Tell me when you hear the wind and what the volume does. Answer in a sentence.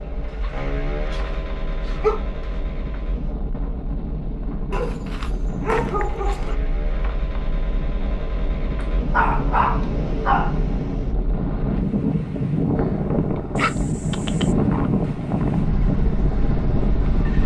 You can hear the wind from 0.0 to 17.4 s, getting louder.